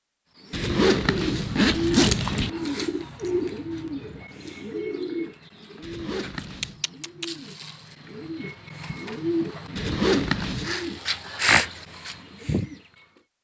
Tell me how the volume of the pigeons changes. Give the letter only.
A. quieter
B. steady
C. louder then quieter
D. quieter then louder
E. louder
D.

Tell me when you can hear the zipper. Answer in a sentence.
You can hear the zipper from 0.5 to 2.5 s, from 5.8 to 6.8 s and from 9.8 to 10.8 s.